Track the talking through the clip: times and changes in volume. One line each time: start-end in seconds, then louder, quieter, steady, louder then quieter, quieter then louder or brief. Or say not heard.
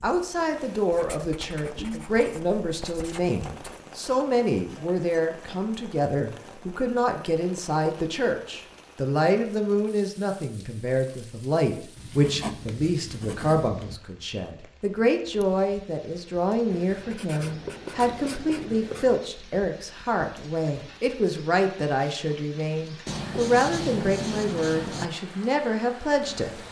0.0-26.6 steady.